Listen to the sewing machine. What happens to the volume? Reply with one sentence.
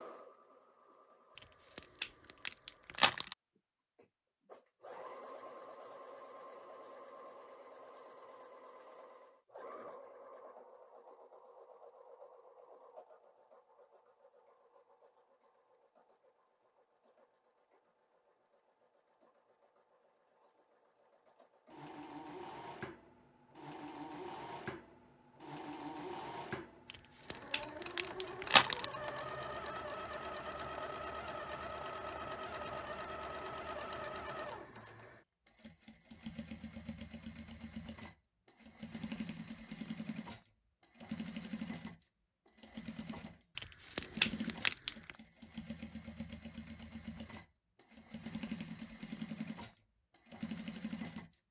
The loudness of the sewing machine goes down, then up.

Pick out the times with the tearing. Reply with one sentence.
The tearing can be heard from 1.4 to 3.4 s, from 26.9 to 28.9 s and from 43.5 to 45.1 s.